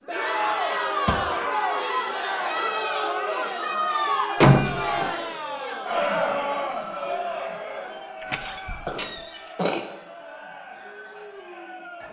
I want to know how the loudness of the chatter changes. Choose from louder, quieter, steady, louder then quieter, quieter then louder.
quieter.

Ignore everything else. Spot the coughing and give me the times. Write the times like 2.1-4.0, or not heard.
8.4-9.8.